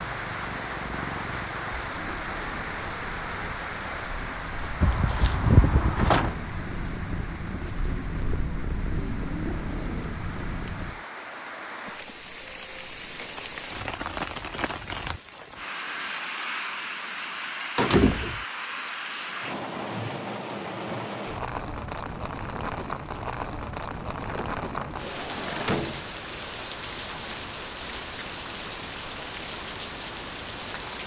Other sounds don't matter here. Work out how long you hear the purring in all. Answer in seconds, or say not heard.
11 s.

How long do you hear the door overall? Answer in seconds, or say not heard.
4 s.